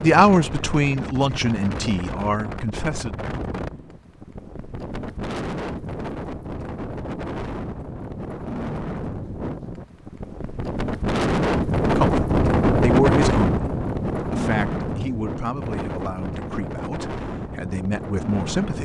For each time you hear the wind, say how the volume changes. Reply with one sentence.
You can hear the wind from 0.0 to 18.8 s, getting louder then quieter.